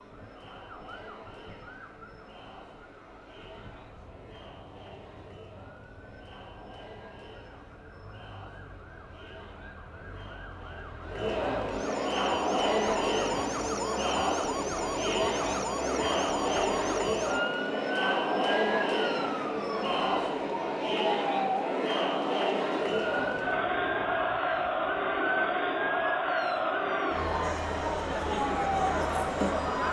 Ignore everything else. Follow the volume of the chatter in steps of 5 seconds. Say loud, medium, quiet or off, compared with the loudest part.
quiet, quiet, loud, loud, loud, loud.